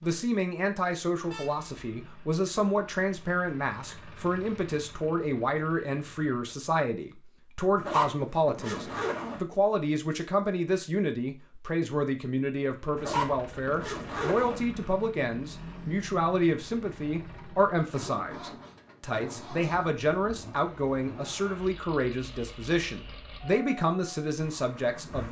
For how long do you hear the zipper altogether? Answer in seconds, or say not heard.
3 s.